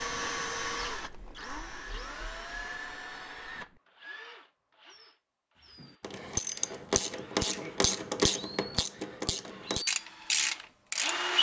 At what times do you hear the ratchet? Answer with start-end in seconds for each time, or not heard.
5.8-11.2.